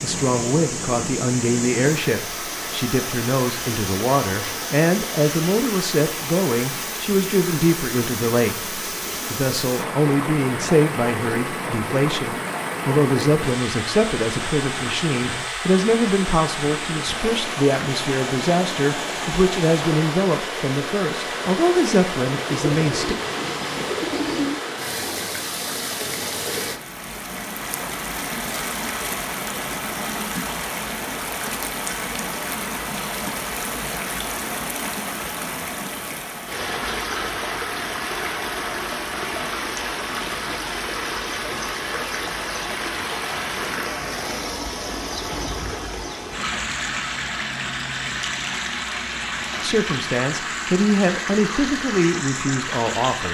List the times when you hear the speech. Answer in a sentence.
You can hear the speech from 0.0 to 23.1 s and from 49.6 to 53.2 s.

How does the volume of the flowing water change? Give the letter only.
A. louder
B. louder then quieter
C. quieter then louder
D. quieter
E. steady
E.